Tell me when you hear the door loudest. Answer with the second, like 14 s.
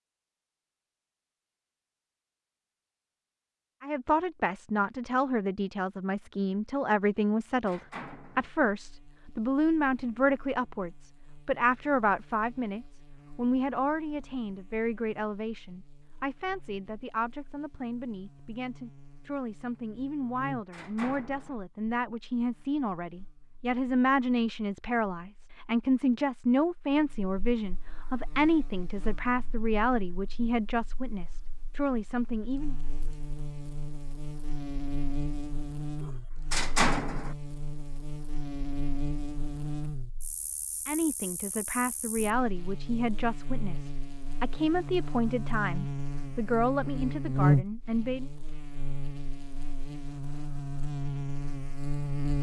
37 s.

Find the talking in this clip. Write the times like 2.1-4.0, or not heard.
3.8-32.8, 40.9-48.3.